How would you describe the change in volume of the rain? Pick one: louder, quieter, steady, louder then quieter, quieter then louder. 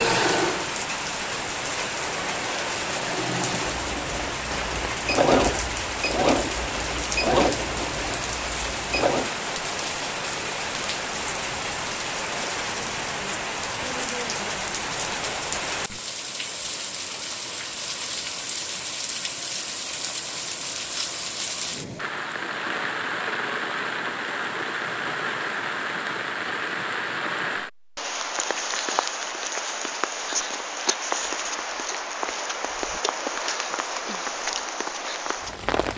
steady.